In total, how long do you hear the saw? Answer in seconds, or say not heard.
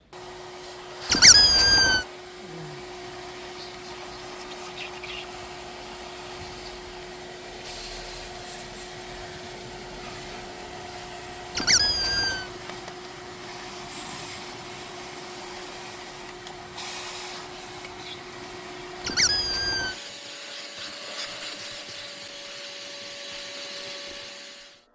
not heard.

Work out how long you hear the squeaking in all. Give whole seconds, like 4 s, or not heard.
3 s.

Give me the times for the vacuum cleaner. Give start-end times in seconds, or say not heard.
0.0-24.9.